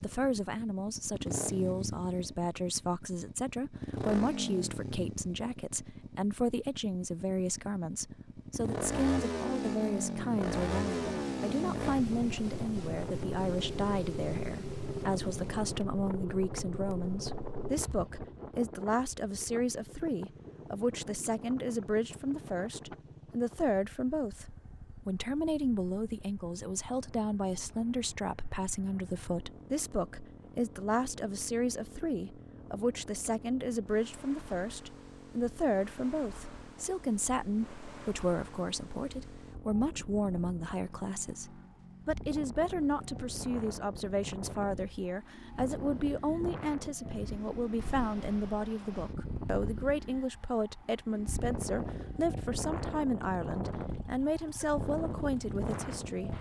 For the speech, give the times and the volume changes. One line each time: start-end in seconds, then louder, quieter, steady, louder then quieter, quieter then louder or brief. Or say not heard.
0.0-56.3 steady.